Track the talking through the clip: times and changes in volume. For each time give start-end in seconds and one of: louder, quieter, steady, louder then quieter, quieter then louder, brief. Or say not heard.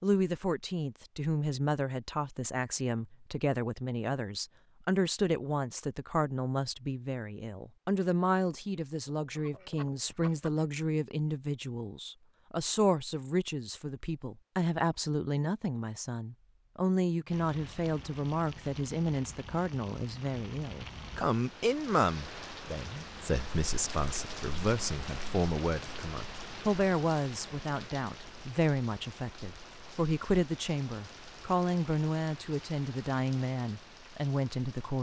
0.0-34.9 steady.